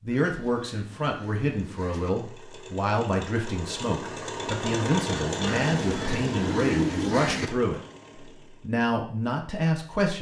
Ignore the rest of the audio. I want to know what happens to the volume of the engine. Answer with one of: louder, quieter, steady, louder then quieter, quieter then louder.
louder then quieter.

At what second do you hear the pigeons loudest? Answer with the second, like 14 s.
7 s.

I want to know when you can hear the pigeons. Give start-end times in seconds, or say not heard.
0.1-2.1, 5.5-7.5.